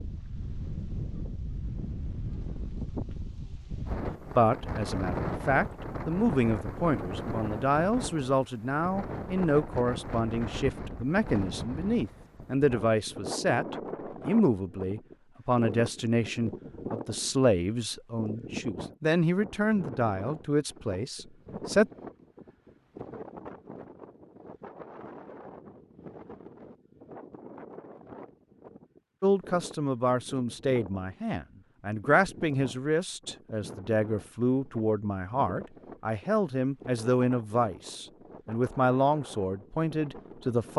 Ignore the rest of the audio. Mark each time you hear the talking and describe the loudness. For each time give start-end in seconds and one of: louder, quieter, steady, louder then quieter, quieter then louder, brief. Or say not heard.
4.3-21.9 steady
29.2-40.7 steady.